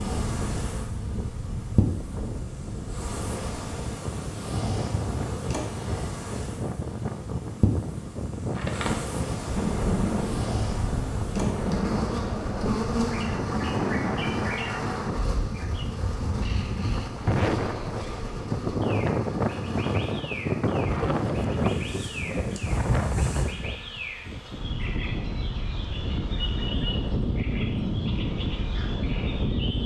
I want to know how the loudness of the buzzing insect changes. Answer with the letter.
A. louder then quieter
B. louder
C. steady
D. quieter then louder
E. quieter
E.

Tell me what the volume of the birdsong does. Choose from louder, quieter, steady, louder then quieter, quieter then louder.
quieter.